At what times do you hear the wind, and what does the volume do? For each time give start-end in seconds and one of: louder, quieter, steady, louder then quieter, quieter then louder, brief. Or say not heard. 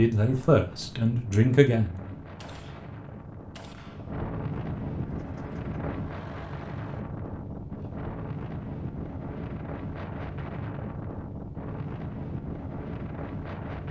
0.1-13.8 louder.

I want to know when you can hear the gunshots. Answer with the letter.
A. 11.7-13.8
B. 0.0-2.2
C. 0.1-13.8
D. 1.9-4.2
D.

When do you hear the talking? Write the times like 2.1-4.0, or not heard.
0.0-2.2.